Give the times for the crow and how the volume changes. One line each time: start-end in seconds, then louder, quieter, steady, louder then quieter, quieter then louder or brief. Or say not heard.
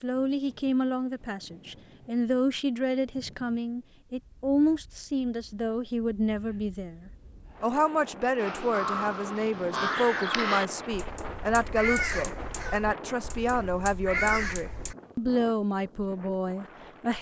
8.3-14.9 quieter then louder.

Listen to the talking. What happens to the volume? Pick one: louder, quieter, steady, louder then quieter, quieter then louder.
steady.